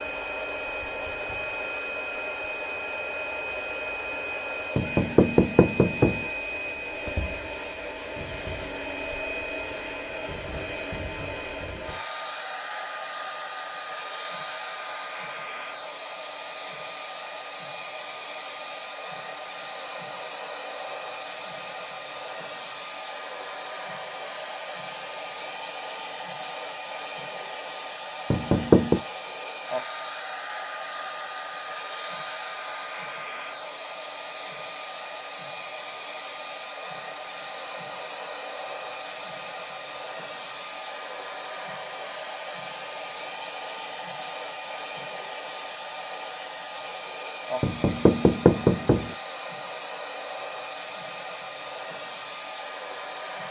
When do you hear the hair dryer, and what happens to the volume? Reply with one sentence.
You can hear the hair dryer from 0.0 to 53.4 s, at a steady volume.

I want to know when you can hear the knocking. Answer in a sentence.
You can hear the knocking from 4.8 to 6.2 s, from 28.3 to 29.0 s and from 47.6 to 49.1 s.